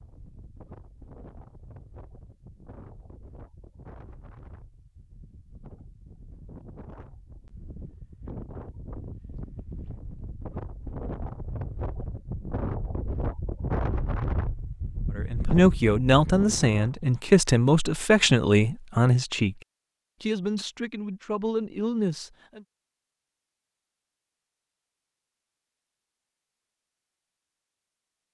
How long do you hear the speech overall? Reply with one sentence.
You can hear the speech for 7 seconds altogether.